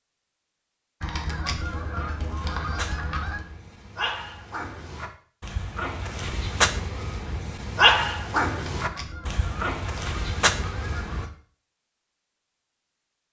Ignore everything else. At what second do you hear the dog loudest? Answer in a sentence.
The volume of the dog peaks at 8 seconds.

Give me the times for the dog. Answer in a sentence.
You can hear the dog from 1.0 to 11.2 s.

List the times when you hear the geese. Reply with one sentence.
You can hear the geese from 1.0 to 3.5 s and from 8.5 to 11.3 s.